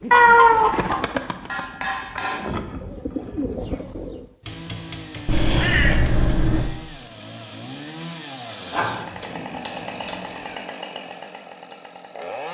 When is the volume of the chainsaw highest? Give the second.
10 s.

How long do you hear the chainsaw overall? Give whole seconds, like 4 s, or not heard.
8 s.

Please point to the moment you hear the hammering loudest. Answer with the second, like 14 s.
2 s.